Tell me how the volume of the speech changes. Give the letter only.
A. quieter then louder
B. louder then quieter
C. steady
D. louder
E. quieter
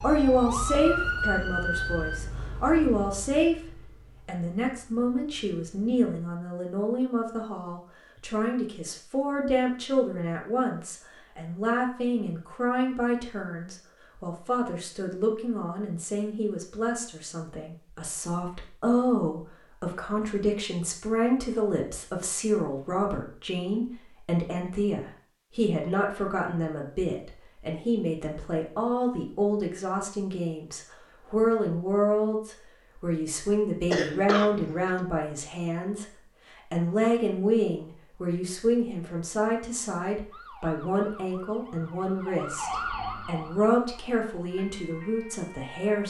C.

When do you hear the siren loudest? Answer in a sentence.
The loudest moment of the siren is at 1 second.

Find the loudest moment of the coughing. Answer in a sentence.
The loudest moment of the coughing is at 34 seconds.